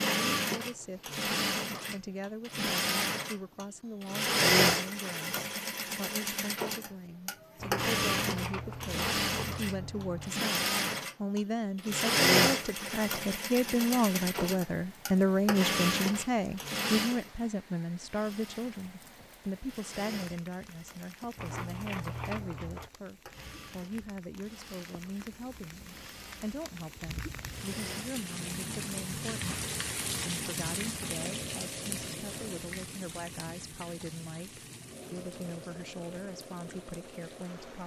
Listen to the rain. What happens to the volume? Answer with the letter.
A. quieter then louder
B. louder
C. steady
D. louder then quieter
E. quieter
D.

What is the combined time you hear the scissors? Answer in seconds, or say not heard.
4 s.